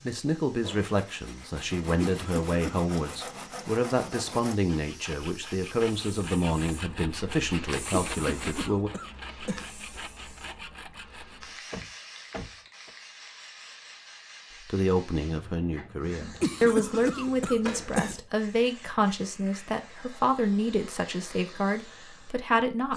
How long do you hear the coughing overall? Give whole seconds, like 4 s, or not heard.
5 s.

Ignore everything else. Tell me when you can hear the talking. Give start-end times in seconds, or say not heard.
0.0-8.9, 14.7-22.9.